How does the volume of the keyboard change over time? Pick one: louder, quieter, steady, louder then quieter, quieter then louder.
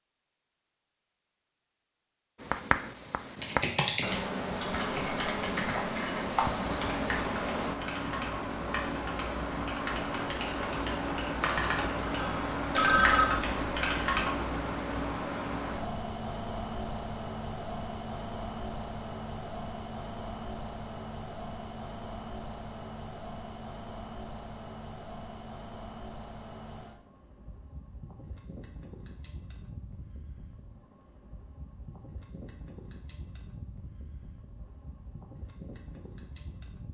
quieter then louder.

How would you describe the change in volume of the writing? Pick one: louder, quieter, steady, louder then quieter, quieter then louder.
steady.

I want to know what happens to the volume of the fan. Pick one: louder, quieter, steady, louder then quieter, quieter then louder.
quieter.